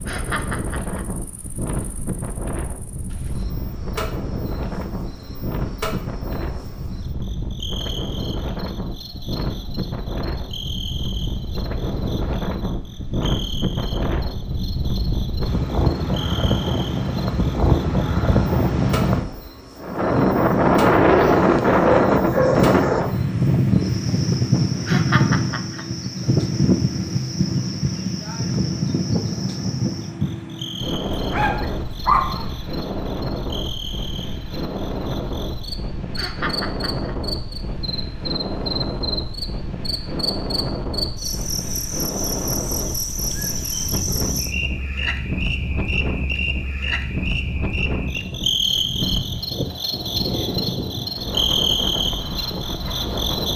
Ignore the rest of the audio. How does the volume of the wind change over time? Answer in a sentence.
The volume of the wind goes up, then down.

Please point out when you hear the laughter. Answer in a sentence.
The laughter can be heard from 0.1 to 1.1 s, from 24.9 to 25.9 s and from 36.1 to 37.1 s.